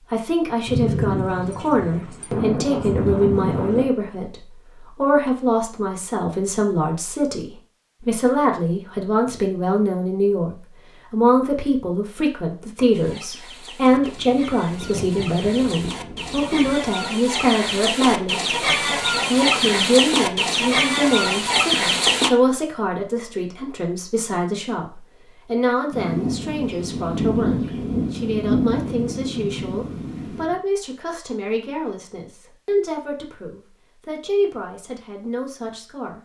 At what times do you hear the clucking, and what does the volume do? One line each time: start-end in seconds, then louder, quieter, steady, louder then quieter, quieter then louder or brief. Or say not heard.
12.9-22.3 louder.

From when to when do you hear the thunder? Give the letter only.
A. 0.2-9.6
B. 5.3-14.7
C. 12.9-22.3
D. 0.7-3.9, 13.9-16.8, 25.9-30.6
D.